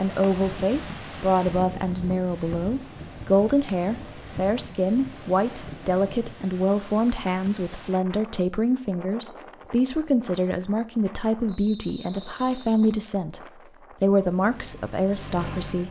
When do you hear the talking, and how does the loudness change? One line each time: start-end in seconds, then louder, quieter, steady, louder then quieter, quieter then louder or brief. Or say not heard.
0.0-13.4 steady
14.0-15.8 brief.